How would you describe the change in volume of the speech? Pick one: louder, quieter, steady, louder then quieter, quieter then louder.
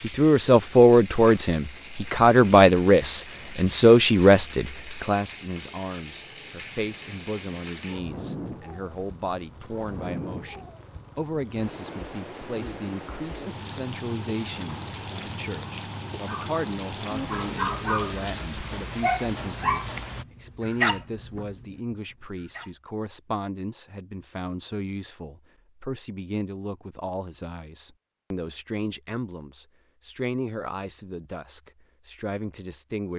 quieter.